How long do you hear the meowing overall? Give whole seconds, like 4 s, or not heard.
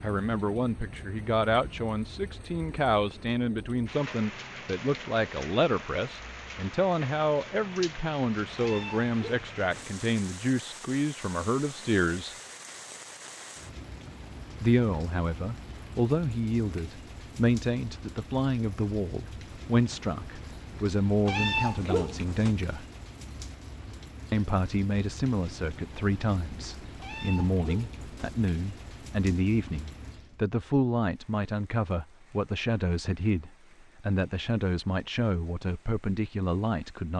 4 s.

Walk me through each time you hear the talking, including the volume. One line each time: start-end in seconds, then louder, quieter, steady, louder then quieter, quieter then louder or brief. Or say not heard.
0.0-12.3 steady
14.6-22.9 steady
24.3-37.1 steady.